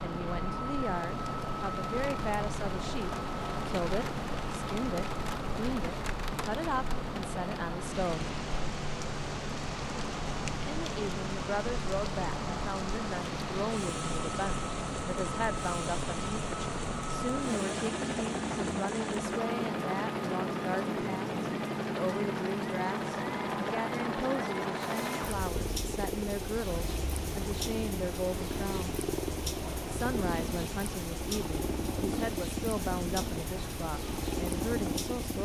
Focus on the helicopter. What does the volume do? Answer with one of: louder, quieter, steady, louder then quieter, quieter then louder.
steady.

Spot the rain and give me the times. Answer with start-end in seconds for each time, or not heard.
0.0-35.4.